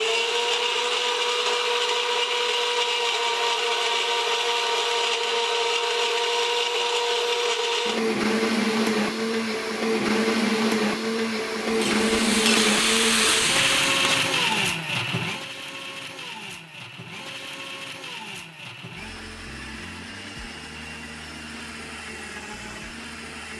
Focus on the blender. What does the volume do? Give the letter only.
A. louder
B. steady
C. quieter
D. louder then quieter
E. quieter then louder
C.